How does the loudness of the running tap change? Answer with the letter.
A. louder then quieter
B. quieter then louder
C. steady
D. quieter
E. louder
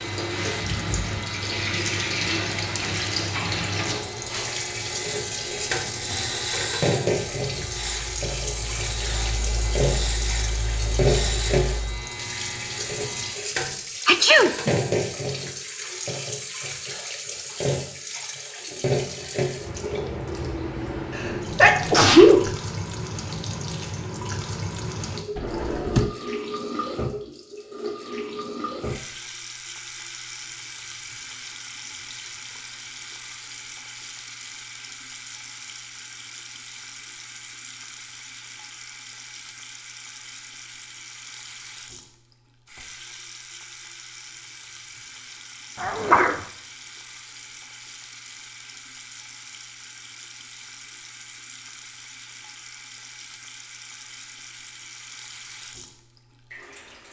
D.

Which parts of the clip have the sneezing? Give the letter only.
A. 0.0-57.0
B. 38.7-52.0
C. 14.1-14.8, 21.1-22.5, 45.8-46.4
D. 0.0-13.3
C.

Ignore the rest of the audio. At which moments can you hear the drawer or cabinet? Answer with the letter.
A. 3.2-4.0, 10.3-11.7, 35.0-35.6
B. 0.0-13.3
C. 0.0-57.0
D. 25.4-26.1
D.